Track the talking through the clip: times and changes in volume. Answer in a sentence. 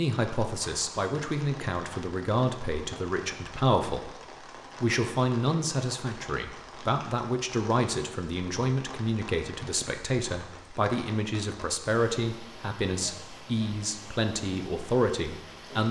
The talking can be heard from 0.0 to 15.8 s, at a steady volume.